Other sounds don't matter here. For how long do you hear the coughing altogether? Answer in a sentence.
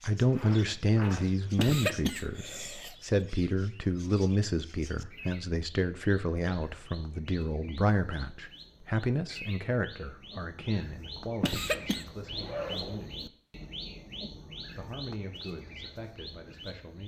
You can hear the coughing for 2 seconds altogether.